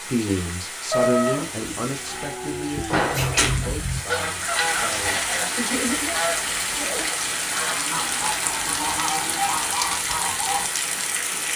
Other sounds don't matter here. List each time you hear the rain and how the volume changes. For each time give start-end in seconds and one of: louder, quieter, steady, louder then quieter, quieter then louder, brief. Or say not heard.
0.0-11.5 louder.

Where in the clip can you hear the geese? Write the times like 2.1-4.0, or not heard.
3.1-10.7.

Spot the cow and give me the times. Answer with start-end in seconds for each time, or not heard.
0.9-3.8, 7.5-9.6.